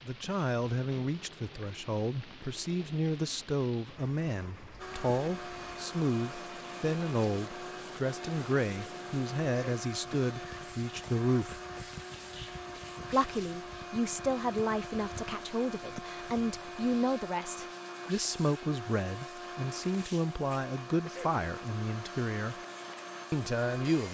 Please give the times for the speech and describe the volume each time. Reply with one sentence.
The speech can be heard from 0.0 to 11.6 s, at a steady volume; from 13.1 to 22.6 s, at a steady volume; and briefly from 23.3 to 24.0 s.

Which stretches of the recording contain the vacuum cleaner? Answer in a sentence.
You can hear the vacuum cleaner from 4.8 to 24.0 s.